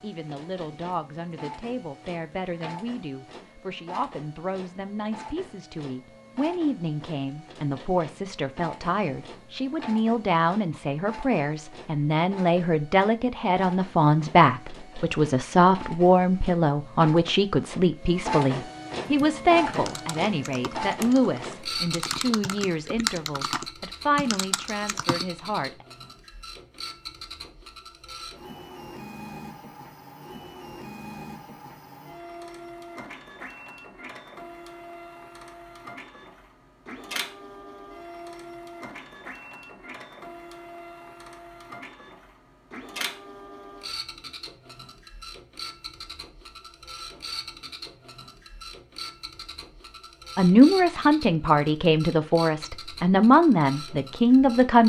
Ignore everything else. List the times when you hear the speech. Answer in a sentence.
The speech can be heard from 0.0 to 25.9 s and from 50.4 to 54.8 s.